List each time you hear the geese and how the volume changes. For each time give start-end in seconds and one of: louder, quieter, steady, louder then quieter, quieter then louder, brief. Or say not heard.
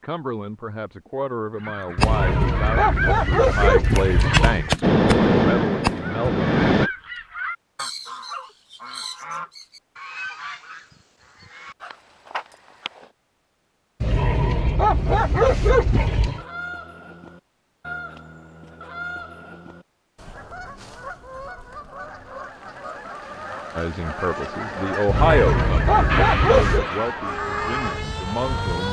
1.6-13.1 quieter
16.3-28.0 louder.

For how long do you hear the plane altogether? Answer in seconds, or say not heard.
5 s.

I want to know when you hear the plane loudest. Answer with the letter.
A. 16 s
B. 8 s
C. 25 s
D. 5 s
D.